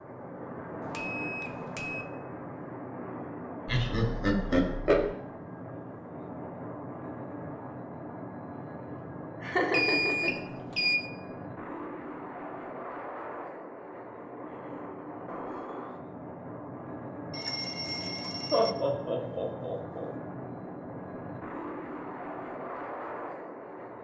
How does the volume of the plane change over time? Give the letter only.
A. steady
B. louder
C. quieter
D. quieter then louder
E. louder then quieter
A.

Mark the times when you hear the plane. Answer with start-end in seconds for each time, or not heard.
0.0-23.9.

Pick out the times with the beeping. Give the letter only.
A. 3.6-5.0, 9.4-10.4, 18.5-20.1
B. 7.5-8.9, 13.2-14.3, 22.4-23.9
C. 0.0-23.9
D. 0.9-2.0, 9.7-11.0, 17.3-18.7
D.